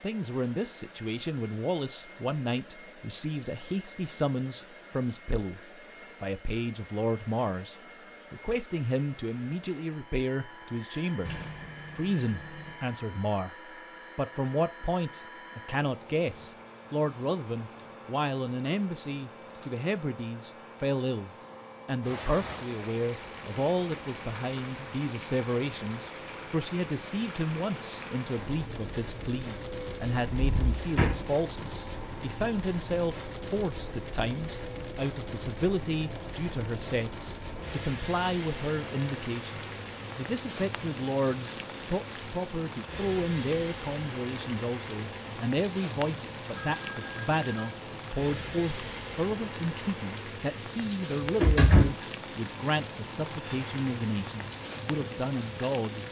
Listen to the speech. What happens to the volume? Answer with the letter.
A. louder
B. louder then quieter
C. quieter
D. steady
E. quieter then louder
D.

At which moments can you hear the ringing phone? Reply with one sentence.
You can hear the ringing phone from 46.5 to 47.9 s.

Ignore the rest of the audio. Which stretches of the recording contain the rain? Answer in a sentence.
The rain can be heard from 22.0 to 56.0 s.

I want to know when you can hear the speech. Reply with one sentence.
The speech can be heard from 0.0 to 56.0 s.